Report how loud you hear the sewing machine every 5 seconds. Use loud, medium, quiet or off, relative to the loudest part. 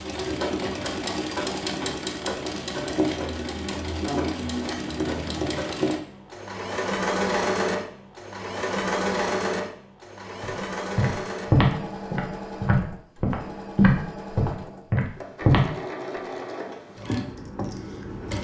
loud, loud, medium, medium.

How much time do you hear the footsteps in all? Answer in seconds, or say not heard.
5 s.